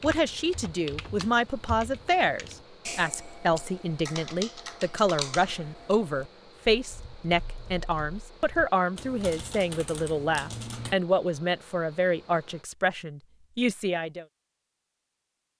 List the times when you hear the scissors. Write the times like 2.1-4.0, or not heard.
not heard.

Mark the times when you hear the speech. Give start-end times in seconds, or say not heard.
0.0-14.2.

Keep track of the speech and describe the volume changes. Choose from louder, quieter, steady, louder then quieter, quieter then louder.
steady.